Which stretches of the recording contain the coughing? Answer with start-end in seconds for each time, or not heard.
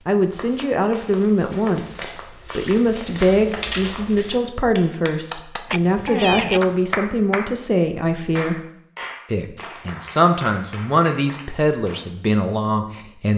5.7-6.8.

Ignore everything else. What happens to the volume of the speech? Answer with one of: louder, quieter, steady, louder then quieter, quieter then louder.
steady.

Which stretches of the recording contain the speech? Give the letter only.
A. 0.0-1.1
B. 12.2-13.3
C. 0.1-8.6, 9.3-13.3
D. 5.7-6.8
C.